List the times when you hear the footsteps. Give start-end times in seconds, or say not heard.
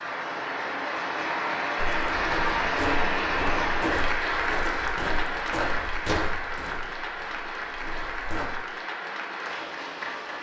1.8-8.4.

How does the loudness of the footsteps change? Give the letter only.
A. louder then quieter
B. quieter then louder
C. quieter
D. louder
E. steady
C.